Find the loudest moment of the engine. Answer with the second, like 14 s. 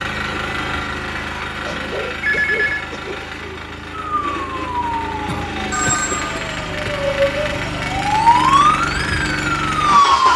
10 s.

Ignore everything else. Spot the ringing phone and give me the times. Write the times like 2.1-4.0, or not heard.
2.2-2.9, 5.7-6.7.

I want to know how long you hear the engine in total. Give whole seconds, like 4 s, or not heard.
10 s.